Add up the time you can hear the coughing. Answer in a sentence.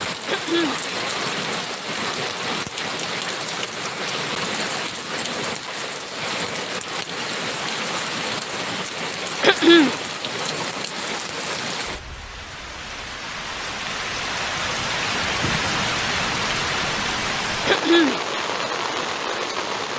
You can hear the coughing for 2 seconds altogether.